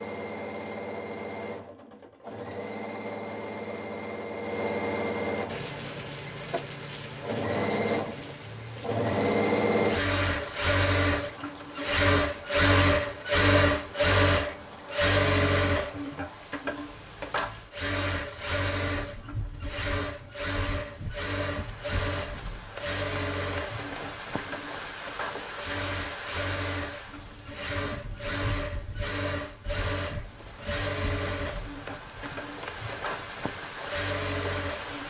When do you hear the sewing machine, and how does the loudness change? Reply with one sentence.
You can hear the sewing machine from 0.0 to 35.0 s, getting louder then quieter.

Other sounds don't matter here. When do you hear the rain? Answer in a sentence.
The rain can be heard from 5.5 to 35.0 s.